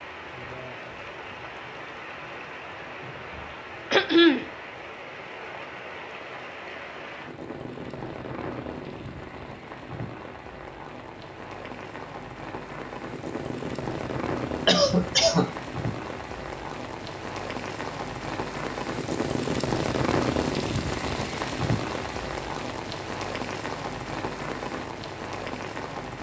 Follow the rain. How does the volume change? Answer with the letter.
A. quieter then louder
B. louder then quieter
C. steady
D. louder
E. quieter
D.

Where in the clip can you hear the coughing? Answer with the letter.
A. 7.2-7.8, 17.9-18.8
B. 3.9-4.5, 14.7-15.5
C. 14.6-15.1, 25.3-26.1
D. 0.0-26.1
B.